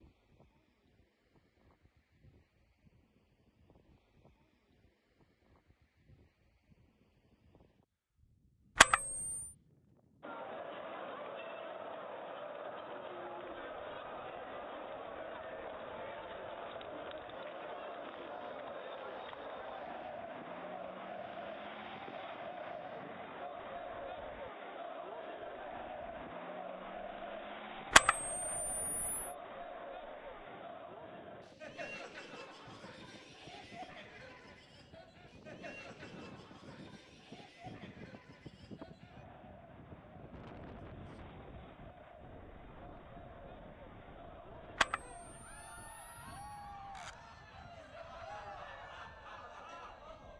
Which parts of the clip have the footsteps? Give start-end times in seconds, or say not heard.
not heard.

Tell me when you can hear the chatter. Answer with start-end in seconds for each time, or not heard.
10.2-50.3.